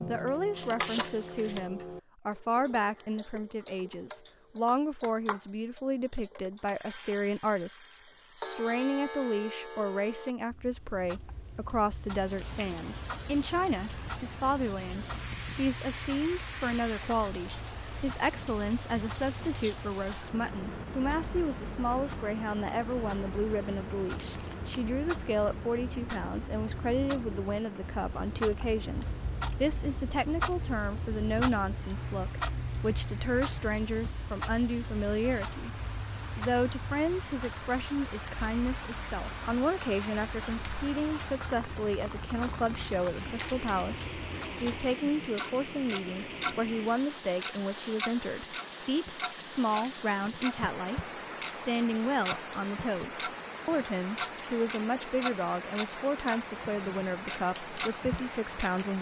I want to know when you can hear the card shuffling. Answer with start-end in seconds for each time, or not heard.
0.6-1.6, 24.2-24.8, 43.2-45.0.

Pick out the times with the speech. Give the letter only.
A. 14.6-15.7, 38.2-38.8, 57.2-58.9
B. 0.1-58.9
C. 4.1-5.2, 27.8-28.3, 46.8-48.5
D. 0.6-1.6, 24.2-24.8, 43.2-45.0
B.